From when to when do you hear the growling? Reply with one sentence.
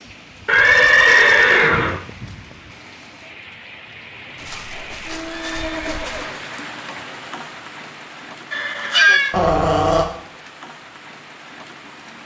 The growling can be heard from 9.3 to 10.1 s.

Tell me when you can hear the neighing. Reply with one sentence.
You can hear the neighing from 0.5 to 2.0 s, from 4.3 to 6.3 s and from 8.5 to 9.3 s.